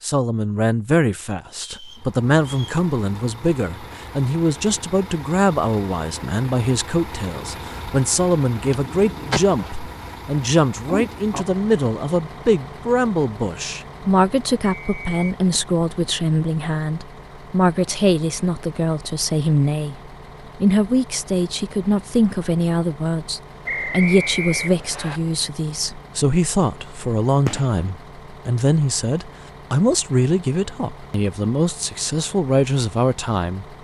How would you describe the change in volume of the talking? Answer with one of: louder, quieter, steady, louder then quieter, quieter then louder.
steady.